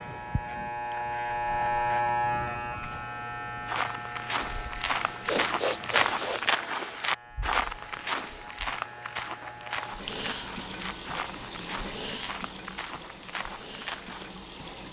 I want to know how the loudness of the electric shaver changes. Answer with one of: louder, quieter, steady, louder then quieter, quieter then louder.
quieter.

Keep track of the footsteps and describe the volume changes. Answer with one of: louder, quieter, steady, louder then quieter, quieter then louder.
quieter.